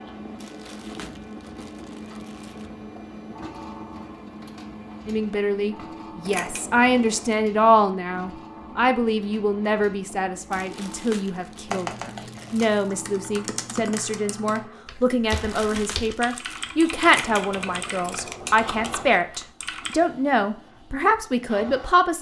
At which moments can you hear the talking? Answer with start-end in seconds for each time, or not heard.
5.0-22.1.